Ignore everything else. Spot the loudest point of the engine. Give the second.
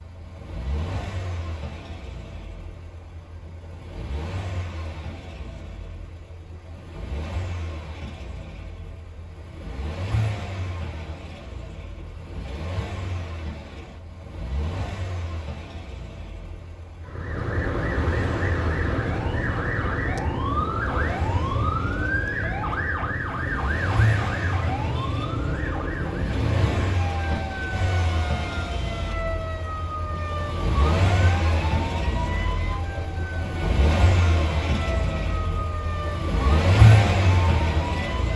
37 s.